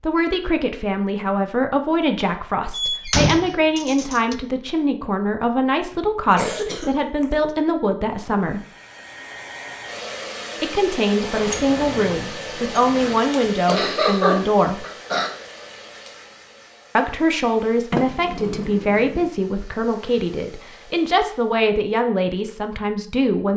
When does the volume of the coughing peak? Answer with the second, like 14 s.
14 s.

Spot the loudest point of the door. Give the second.
3 s.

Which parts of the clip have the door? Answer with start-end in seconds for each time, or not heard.
2.7-4.3, 11.2-13.2, 17.9-19.2.